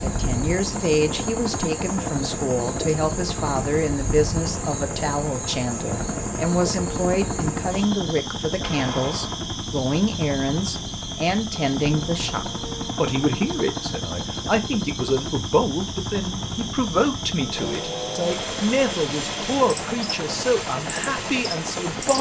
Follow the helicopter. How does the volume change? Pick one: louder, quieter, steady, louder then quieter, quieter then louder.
steady.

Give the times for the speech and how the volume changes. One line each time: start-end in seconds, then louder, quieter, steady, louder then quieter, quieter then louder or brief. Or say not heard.
0.0-22.1 steady.